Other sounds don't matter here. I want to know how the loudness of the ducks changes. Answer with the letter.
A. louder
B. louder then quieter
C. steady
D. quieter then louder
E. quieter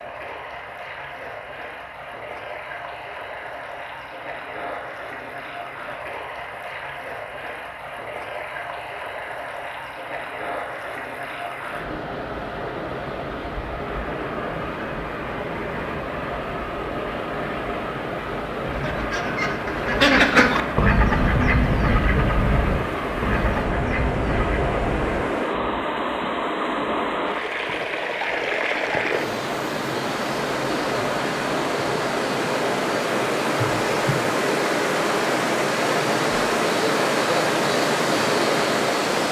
E.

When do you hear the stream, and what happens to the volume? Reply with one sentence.
You can hear the stream from 0.0 to 39.2 s, getting louder.